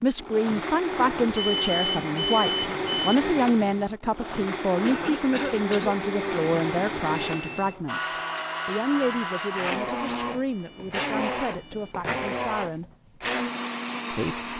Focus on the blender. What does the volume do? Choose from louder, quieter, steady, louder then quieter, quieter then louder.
steady.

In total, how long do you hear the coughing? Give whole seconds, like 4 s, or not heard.
2 s.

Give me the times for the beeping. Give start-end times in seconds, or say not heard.
1.2-3.1, 7.2-7.8, 10.2-12.0.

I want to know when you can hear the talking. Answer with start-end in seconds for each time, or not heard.
0.0-12.9, 14.1-14.5.